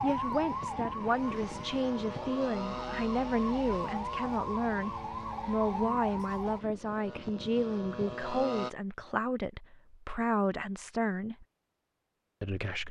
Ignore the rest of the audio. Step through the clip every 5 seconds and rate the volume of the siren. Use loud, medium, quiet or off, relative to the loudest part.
loud, loud, off.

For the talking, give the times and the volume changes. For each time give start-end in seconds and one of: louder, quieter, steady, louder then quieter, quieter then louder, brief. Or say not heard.
0.0-11.4 steady
12.4-12.8 brief.